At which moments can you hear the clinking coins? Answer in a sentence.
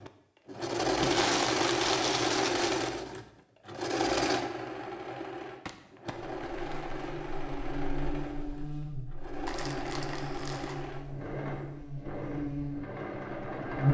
The clinking coins can't be heard in this clip.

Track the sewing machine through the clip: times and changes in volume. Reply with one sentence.
You can hear the sewing machine from 0.0 to 13.9 s, getting quieter.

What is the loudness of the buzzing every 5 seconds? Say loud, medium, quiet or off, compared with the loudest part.
off, medium, loud.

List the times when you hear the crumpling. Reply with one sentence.
You can hear the crumpling from 1.0 to 2.9 s, from 5.7 to 7.0 s and from 9.4 to 10.8 s.